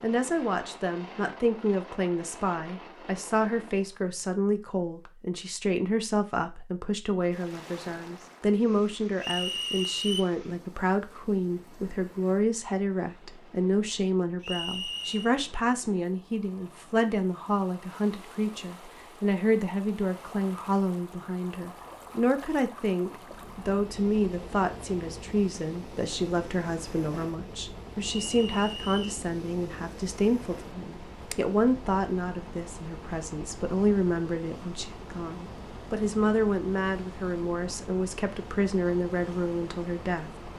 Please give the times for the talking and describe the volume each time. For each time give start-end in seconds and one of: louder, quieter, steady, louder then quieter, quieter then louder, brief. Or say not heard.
0.0-40.3 steady.